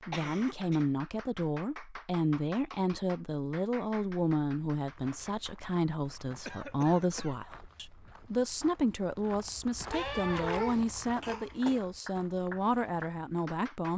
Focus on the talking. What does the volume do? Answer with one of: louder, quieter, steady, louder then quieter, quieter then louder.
steady.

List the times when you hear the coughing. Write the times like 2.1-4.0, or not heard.
0.1-0.8, 6.5-7.3, 9.9-11.8.